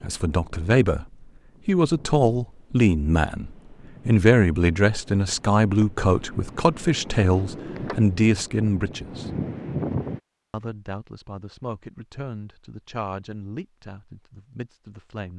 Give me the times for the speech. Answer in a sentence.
You can hear the speech from 0.0 to 1.1 s, from 1.6 to 9.3 s and from 10.5 to 15.3 s.